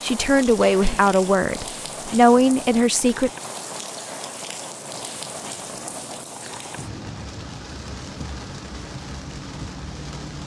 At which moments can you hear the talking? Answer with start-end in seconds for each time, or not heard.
0.0-3.3.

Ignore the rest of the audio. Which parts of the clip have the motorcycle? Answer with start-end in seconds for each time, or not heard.
not heard.